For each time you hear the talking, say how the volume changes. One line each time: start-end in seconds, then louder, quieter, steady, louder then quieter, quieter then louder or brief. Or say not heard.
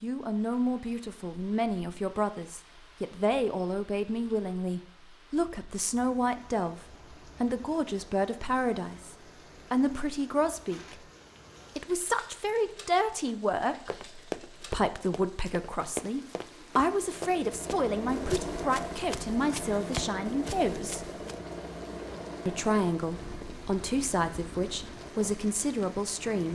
0.0-11.0 steady
11.8-21.1 steady
22.4-26.5 steady.